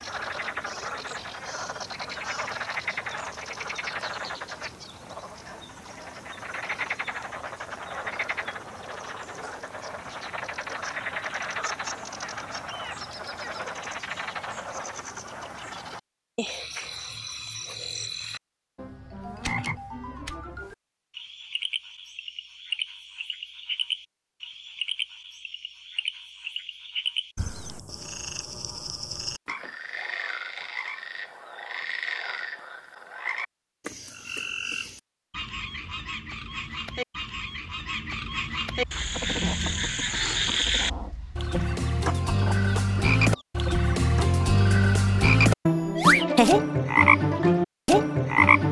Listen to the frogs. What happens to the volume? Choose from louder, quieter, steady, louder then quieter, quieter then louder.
louder.